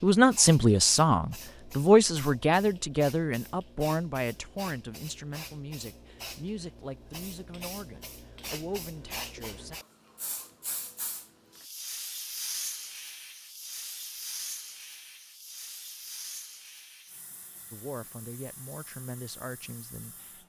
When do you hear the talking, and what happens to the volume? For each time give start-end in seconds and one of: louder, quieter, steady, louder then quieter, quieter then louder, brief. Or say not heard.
0.0-9.8 quieter
17.7-20.4 brief.